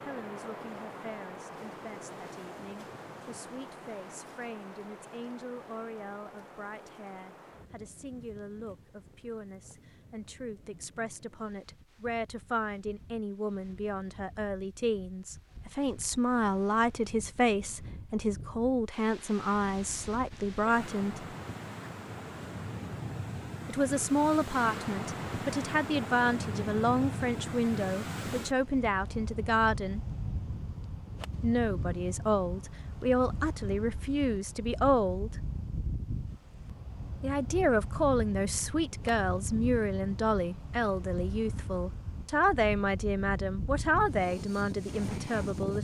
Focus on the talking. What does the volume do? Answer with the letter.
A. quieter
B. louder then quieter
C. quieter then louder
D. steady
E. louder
E.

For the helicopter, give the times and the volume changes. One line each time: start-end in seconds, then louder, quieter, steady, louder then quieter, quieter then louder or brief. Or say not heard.
not heard.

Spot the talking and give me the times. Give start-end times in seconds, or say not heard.
0.0-21.2, 23.6-30.1, 31.4-35.3, 37.2-45.7.